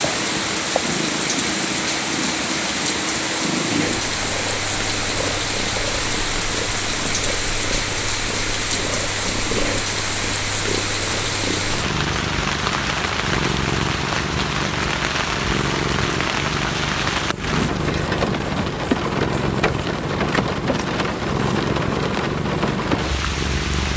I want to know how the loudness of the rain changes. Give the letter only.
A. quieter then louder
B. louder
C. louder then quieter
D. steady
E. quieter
D.